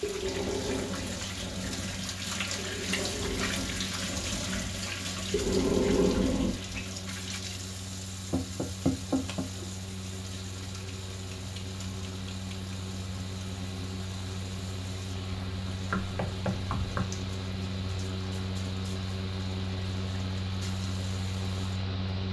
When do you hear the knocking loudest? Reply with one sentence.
The loudest moment of the knocking is at 9 seconds.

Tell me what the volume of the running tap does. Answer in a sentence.
The loudness of the running tap goes down.